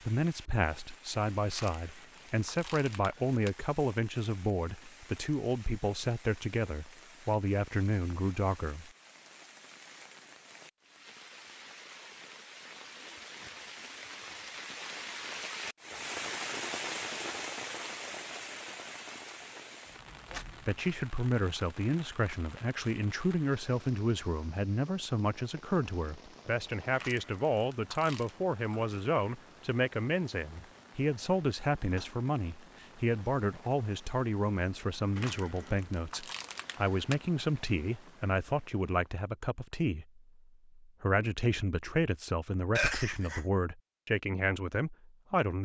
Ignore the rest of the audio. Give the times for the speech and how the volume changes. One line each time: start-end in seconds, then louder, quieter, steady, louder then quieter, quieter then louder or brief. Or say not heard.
0.1-8.9 steady
20.6-45.6 steady.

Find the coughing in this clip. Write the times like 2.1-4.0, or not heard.
42.8-43.5.